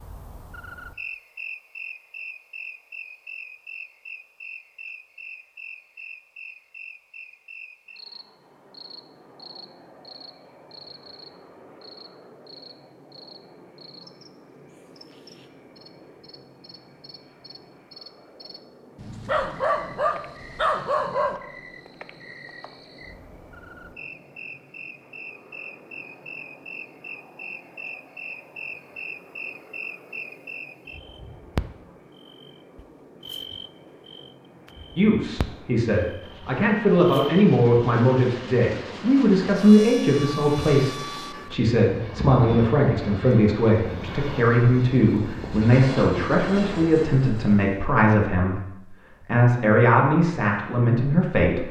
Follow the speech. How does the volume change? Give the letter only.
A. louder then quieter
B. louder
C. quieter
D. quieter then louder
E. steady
E.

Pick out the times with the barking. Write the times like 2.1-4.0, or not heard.
18.9-21.4.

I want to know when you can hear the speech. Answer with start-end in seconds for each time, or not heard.
35.0-51.6.